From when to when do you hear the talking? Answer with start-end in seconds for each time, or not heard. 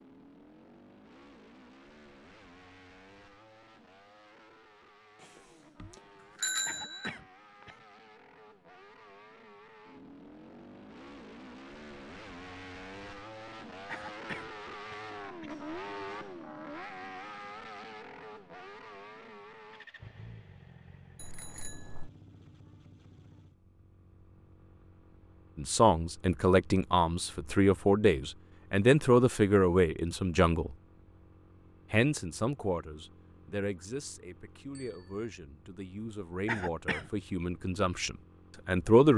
25.6-30.8, 31.9-39.1.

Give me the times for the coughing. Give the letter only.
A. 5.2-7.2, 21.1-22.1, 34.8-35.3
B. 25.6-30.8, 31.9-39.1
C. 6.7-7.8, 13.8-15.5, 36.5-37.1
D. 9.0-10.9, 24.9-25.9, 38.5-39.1
C.